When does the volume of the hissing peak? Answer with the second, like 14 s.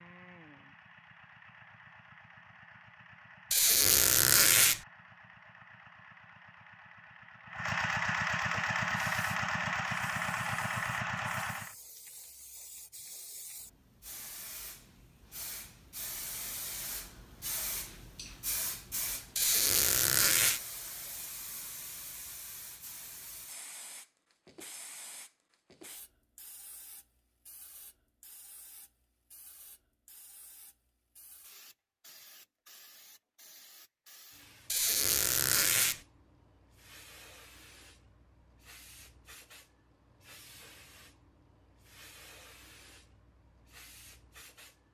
19 s.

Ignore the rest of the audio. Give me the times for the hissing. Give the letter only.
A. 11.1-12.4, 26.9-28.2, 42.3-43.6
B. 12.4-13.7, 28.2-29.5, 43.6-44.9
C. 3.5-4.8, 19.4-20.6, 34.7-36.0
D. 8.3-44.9
D.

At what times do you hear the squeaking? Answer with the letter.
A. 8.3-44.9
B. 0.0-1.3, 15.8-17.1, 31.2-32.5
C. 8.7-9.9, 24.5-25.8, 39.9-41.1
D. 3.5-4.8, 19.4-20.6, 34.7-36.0
D.